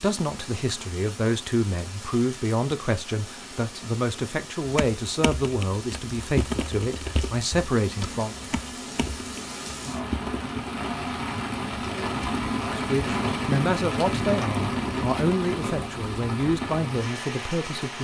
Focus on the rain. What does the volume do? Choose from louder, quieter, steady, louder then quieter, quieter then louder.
louder.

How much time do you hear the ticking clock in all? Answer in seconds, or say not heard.
not heard.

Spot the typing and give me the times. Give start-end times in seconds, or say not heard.
4.7-10.4.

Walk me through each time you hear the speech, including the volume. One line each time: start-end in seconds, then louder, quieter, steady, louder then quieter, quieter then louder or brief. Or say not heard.
0.0-8.3 steady
12.7-17.9 steady.